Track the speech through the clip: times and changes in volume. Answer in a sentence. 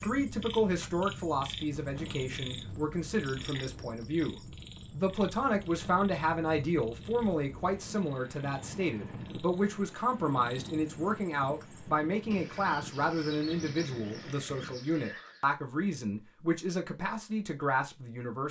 You can hear the speech from 0.0 to 18.4 s, at a steady volume.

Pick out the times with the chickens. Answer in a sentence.
You can't hear the chickens here.